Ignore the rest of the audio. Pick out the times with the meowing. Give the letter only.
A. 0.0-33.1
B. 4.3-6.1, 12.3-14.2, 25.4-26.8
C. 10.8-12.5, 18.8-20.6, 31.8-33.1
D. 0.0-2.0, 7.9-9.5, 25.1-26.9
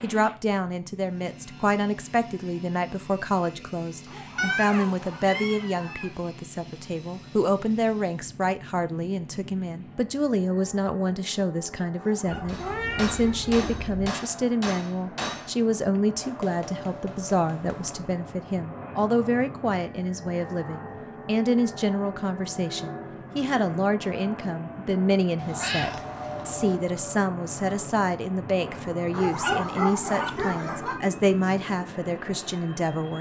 B.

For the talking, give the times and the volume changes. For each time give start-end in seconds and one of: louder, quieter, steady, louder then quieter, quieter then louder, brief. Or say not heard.
0.0-33.1 steady.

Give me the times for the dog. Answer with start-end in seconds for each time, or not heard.
4.0-6.1, 11.9-13.6, 29.1-30.9.